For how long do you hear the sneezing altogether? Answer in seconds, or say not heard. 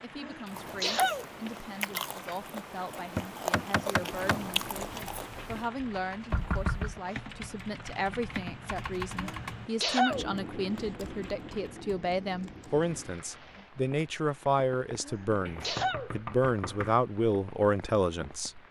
3 s.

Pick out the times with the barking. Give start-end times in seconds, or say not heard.
not heard.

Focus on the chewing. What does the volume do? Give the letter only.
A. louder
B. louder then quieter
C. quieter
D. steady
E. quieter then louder
A.